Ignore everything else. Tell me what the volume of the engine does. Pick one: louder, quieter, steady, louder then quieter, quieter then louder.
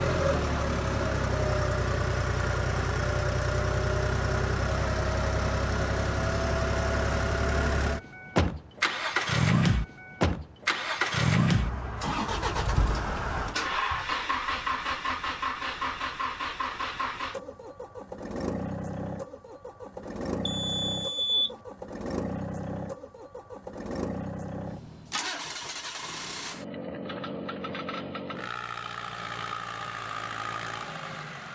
quieter.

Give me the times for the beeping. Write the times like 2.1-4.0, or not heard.
20.4-21.6.